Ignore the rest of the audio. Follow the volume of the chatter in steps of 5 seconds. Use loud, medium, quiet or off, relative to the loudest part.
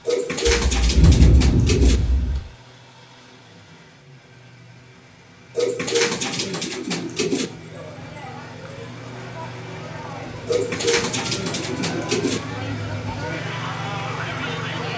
off, medium, loud.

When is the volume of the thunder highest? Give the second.
1 s.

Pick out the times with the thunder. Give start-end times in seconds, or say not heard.
0.5-2.4.